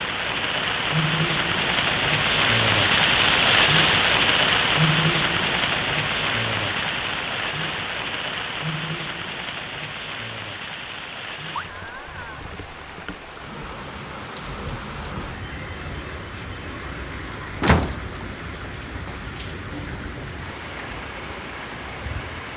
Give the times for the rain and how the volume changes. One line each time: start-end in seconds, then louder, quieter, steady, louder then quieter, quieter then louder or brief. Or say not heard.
0.0-22.5 quieter.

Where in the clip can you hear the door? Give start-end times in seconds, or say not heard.
17.6-19.1.